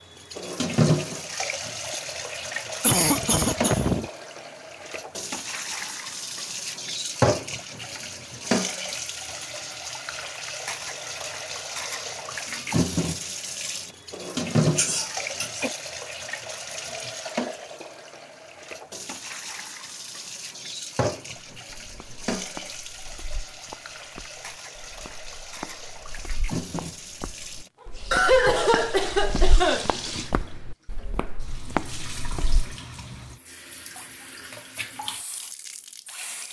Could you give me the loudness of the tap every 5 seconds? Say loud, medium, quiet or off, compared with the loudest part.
loud, loud, loud, medium, medium, medium, medium, medium.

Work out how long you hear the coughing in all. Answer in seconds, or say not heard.
4 s.